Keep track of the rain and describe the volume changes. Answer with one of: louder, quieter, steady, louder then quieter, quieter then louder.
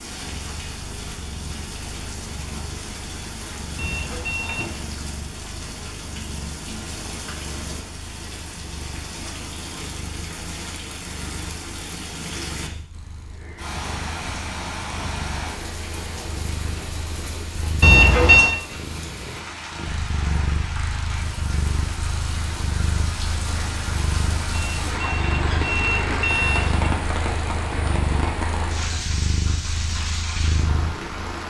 louder.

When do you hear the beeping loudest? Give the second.
18 s.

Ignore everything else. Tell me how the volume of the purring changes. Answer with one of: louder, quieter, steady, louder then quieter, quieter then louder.
louder.